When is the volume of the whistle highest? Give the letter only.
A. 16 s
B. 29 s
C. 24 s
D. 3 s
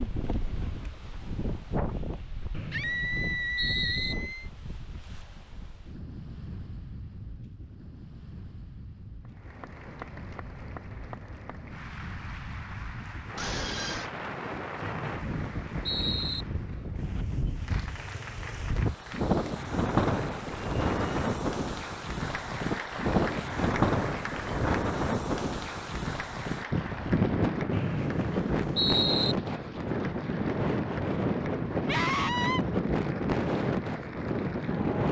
B.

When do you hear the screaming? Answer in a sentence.
You can hear the screaming from 2.7 to 4.5 s, from 13.3 to 14.1 s and from 31.9 to 32.6 s.